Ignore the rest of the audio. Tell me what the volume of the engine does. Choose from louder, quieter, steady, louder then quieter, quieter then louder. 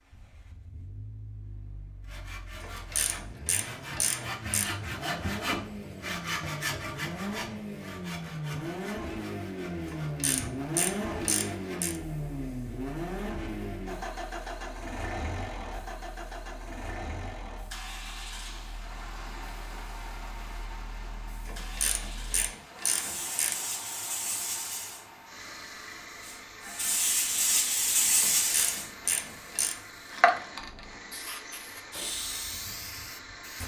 louder then quieter.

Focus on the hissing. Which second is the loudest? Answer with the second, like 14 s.
28 s.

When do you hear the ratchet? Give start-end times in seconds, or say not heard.
2.6-4.7, 9.9-12.0, 21.4-23.6, 28.2-29.8.